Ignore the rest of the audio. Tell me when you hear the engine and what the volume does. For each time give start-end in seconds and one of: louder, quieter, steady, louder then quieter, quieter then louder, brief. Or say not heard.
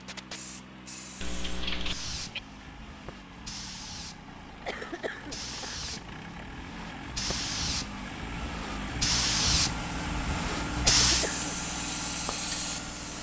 0.0-13.1 louder.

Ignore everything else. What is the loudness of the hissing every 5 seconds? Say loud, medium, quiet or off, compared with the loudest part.
quiet, loud, loud.